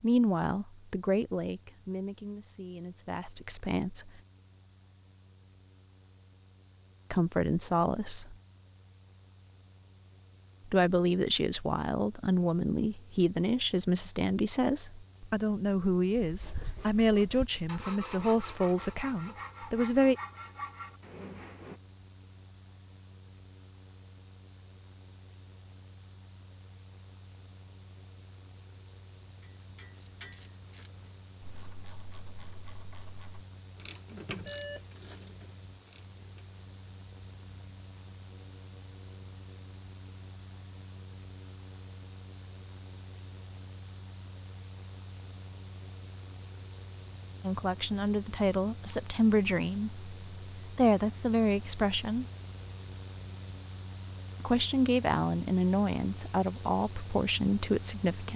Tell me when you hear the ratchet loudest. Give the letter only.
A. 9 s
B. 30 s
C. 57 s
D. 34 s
D.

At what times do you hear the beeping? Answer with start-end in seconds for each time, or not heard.
34.0-34.9.